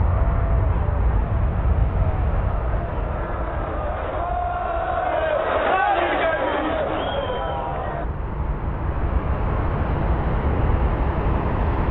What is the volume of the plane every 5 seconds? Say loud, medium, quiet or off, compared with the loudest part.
medium, medium, loud.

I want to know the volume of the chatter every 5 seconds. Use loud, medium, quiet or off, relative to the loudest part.
medium, loud, off.